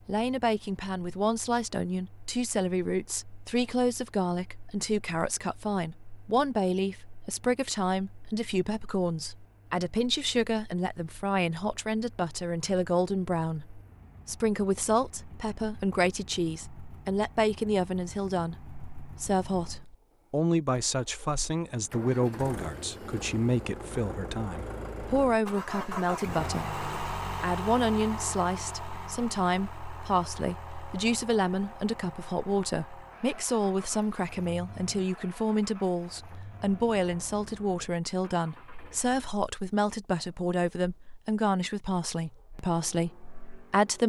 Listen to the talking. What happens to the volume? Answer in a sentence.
The volume of the talking stays about the same.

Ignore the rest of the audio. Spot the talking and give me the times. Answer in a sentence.
The talking can be heard from 0.1 to 44.0 s.